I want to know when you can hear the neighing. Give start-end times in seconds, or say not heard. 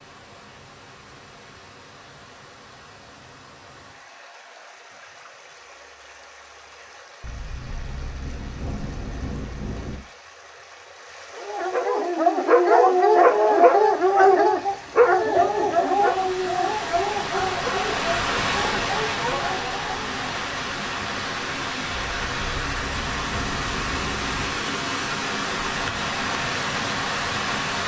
not heard.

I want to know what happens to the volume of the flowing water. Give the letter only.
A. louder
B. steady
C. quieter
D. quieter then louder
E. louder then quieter
A.